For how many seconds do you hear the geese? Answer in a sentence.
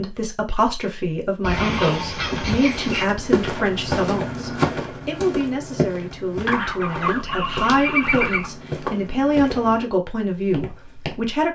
The geese can be heard for 4 seconds in total.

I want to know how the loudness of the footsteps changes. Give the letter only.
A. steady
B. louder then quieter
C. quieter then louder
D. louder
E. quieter
E.